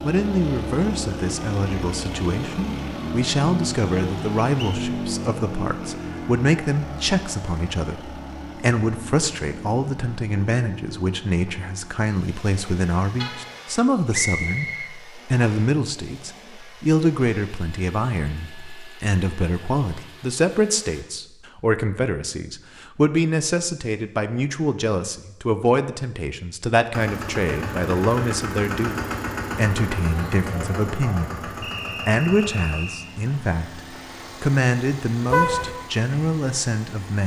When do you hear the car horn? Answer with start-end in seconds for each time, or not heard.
13.2-13.7, 35.2-35.7.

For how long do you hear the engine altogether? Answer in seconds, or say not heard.
31 s.